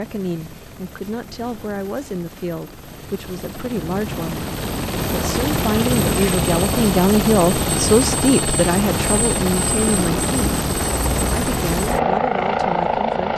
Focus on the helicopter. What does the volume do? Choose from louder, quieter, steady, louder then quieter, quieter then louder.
louder.